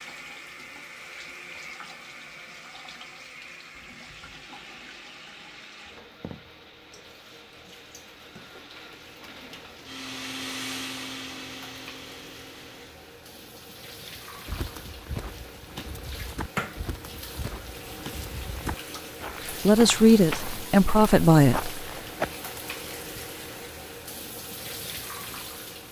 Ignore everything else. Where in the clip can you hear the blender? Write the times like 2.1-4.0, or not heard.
4.5-12.9.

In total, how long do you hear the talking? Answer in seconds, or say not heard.
2 s.